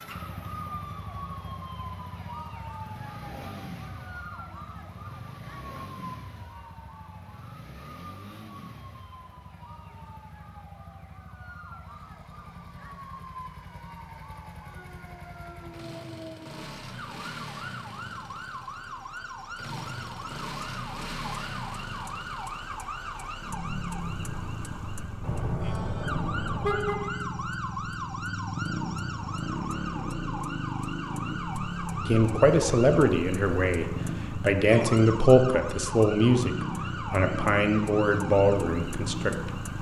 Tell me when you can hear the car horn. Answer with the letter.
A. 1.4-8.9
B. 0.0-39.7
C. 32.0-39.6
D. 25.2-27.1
D.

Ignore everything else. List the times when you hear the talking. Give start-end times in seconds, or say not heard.
32.0-39.6.